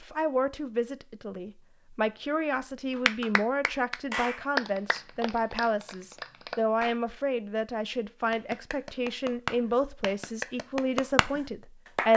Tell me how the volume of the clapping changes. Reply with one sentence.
The loudness of the clapping goes down, then up.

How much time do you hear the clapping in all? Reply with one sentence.
You can hear the clapping for 8 seconds altogether.